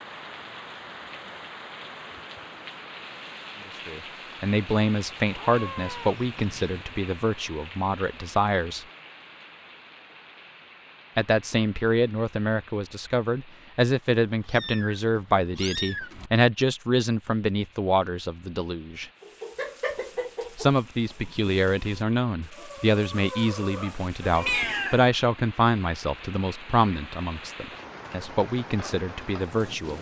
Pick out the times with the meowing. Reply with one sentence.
The meowing can be heard from 5.3 to 6.8 s, from 14.2 to 16.3 s and from 24.4 to 25.1 s.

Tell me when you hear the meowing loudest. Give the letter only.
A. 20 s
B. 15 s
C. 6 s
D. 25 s
D.